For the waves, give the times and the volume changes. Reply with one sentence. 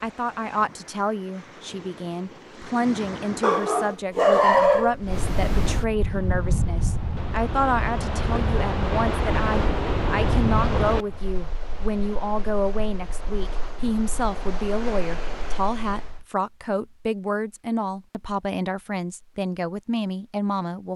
You can hear the waves from 0.0 to 16.2 s, getting louder then quieter.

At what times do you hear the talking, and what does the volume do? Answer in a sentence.
You can hear the talking from 0.0 to 20.9 s, at a steady volume.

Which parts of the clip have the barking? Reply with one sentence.
You can hear the barking from 3.4 to 5.0 s.